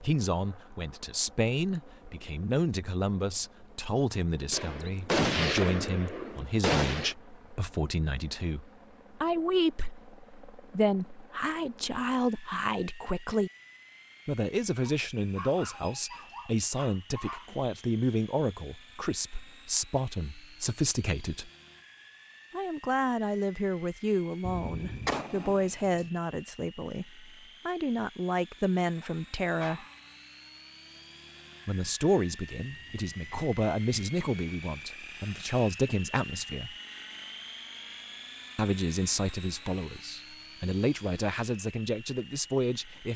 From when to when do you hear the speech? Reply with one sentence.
The speech can be heard from 0.0 to 13.5 s, from 14.2 to 21.5 s, from 22.5 to 29.9 s, from 31.6 to 36.8 s and from 38.5 to 43.1 s.